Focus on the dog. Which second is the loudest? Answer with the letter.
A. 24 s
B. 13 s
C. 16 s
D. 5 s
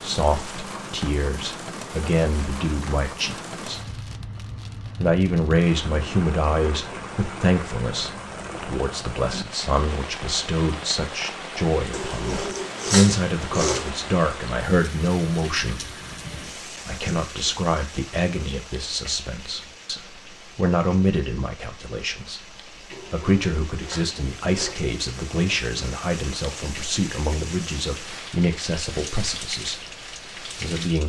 B.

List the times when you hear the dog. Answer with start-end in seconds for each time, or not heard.
11.9-13.9, 22.9-24.8.